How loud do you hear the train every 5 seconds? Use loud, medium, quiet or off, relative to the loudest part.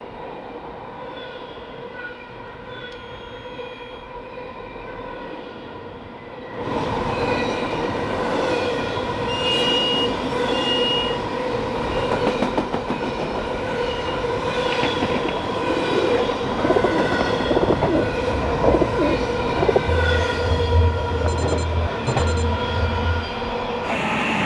quiet, loud, loud, loud, loud.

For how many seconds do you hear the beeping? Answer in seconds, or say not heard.
5 s.